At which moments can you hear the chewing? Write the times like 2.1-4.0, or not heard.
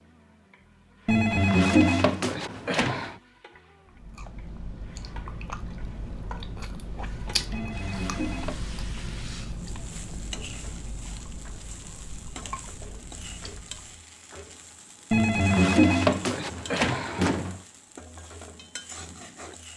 3.9-14.1.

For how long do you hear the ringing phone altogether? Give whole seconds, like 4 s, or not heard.
6 s.